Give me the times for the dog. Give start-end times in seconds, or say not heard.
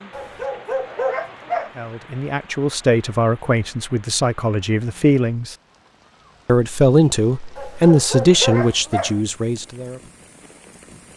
0.1-1.7, 7.5-9.2.